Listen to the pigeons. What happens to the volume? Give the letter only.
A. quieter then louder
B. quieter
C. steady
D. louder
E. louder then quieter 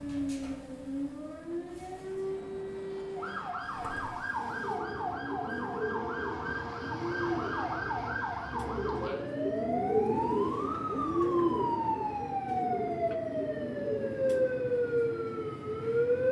E.